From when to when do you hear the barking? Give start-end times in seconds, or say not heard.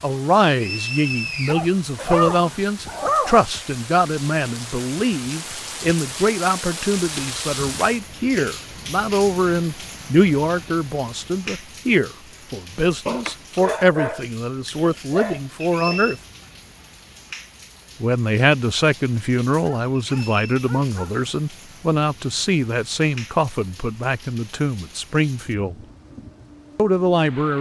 1.4-3.5, 13.1-16.0, 19.6-21.1.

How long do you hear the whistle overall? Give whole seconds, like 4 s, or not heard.
2 s.